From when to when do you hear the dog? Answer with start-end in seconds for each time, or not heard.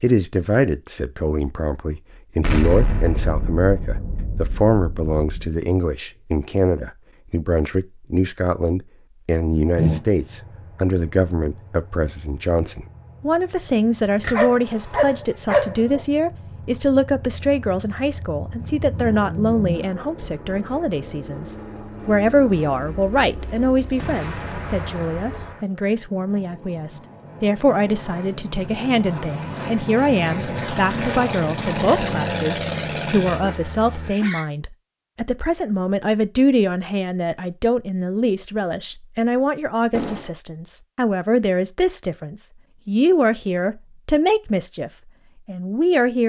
14.2-16.1, 32.7-34.5.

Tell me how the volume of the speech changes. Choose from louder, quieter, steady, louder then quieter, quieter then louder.
steady.